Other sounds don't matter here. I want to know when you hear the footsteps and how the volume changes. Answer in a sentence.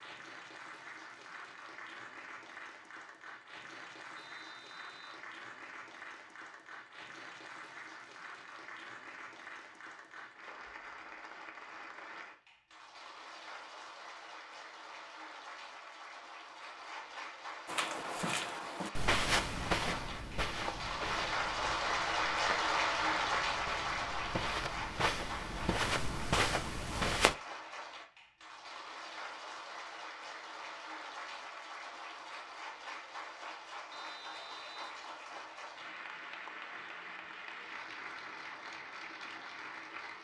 You can hear the footsteps from 17.6 to 27.4 s, getting quieter then louder.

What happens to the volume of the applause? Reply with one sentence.
The loudness of the applause goes up, then down.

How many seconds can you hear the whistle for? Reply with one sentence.
You can hear the whistle for 2 seconds altogether.